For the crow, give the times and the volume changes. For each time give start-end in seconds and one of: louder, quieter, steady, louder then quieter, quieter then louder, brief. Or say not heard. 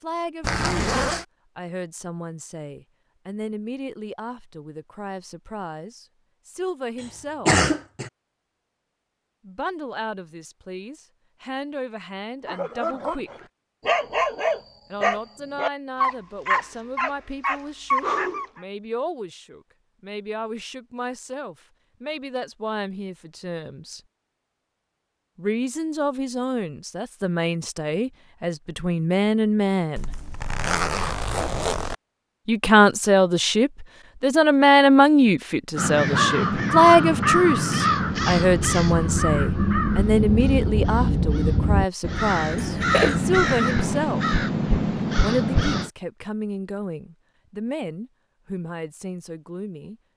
35.8-45.9 steady.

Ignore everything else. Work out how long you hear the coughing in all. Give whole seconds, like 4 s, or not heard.
2 s.